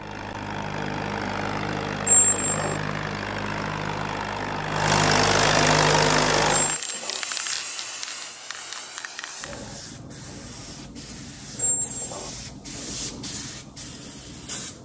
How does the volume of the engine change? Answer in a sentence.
The loudness of the engine goes up.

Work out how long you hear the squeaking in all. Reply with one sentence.
You can hear the squeaking for 2 seconds altogether.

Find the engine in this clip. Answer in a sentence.
The engine can be heard from 0.0 to 6.8 s.